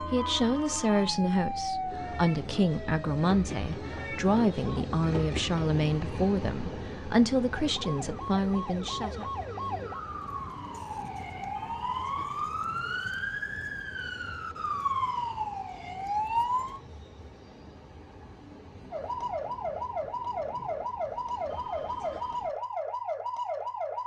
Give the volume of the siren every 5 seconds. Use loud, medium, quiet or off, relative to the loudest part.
medium, medium, loud, loud, loud.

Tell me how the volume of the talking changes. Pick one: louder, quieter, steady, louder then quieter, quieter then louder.
steady.